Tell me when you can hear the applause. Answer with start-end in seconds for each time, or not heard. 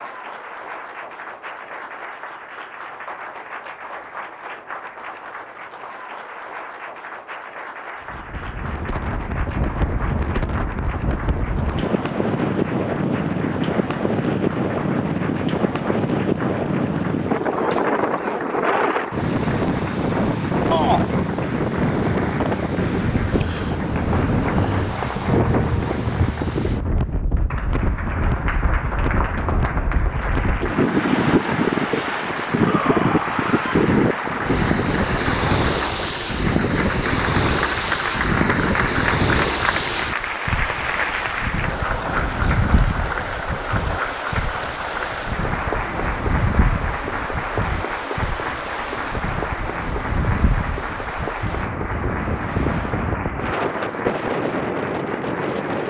0.0-55.8.